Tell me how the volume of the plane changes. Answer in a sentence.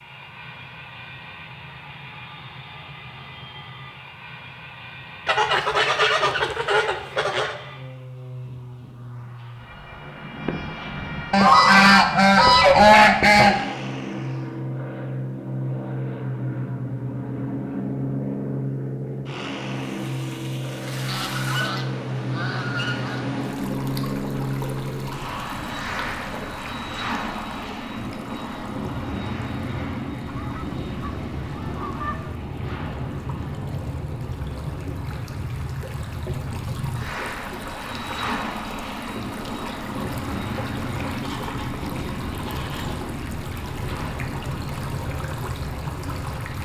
The loudness of the plane goes up.